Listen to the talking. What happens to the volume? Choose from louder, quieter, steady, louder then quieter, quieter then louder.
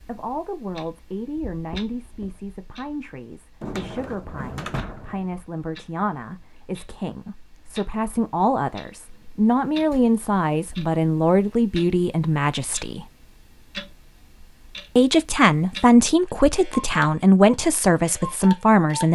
louder.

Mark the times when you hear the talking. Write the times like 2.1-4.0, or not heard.
0.0-13.1, 14.9-19.0.